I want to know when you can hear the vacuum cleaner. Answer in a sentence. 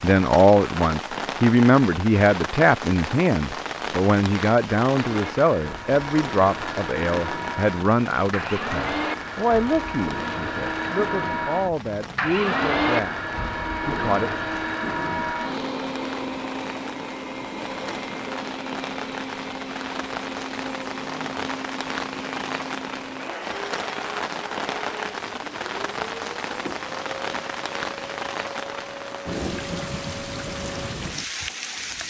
The vacuum cleaner can be heard from 4.9 to 32.0 s.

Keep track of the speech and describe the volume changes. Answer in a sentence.
The loudness of the speech goes down.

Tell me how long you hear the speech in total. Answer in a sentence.
The speech can be heard for 14 seconds in total.